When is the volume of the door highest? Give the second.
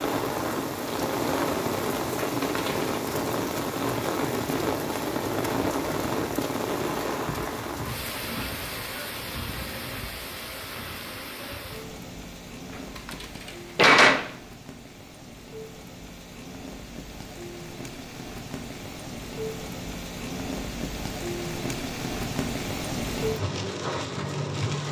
14 s.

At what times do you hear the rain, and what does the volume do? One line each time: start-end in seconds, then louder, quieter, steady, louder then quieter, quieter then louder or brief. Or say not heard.
0.0-24.8 quieter then louder.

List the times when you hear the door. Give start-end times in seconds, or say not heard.
2.2-3.0, 12.9-14.3.